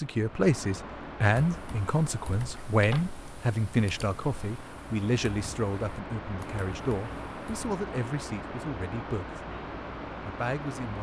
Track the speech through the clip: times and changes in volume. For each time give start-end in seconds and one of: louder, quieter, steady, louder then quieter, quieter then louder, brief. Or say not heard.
0.0-9.4 quieter
10.2-10.9 brief.